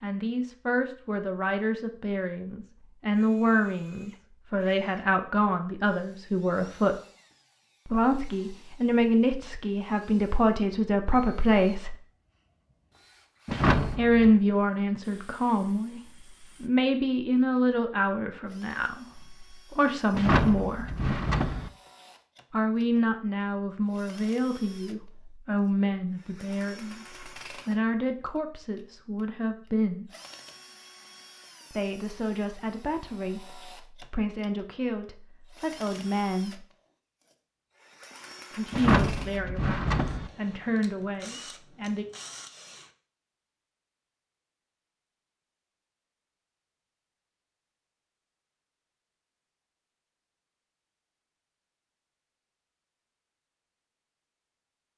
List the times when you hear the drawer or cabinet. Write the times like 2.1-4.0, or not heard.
13.4-14.3, 20.1-21.7, 38.7-40.3.